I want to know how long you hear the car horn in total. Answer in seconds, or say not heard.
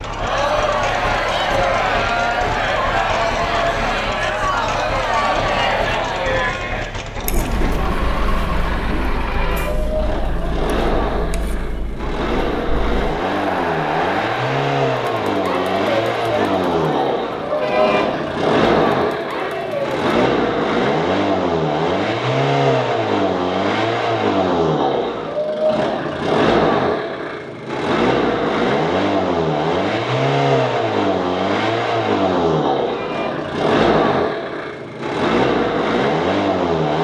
2 s.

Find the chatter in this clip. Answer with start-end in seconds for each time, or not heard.
0.0-20.1.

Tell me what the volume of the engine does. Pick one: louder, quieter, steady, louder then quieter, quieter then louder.
louder.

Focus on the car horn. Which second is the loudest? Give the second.
18 s.